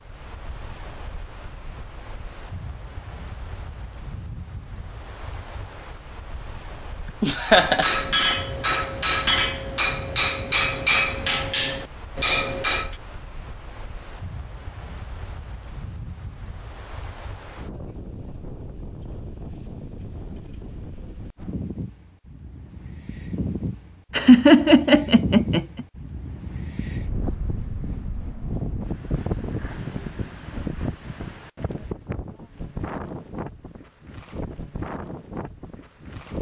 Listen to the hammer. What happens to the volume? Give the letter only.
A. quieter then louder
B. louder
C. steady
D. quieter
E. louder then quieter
C.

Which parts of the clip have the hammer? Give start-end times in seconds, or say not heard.
7.5-12.9.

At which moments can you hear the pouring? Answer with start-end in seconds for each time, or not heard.
not heard.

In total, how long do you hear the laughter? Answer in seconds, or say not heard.
2 s.